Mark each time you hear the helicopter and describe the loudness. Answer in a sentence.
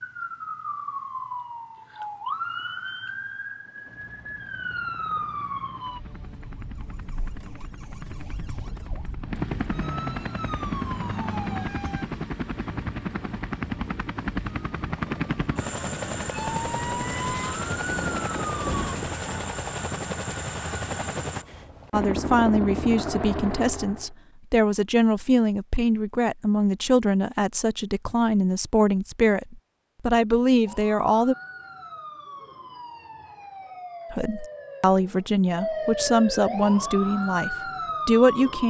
You can hear the helicopter from 3.5 to 24.1 s, getting louder.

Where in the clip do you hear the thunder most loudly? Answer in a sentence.
The volume of the thunder peaks at 19 seconds.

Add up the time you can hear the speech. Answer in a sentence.
You can hear the speech for 14 seconds altogether.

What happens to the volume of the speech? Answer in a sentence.
The volume of the speech stays about the same.